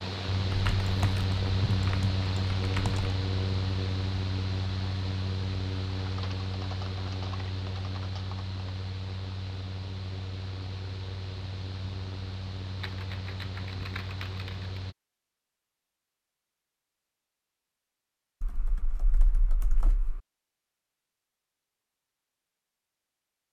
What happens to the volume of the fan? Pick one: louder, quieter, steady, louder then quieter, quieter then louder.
quieter.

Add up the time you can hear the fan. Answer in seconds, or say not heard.
15 s.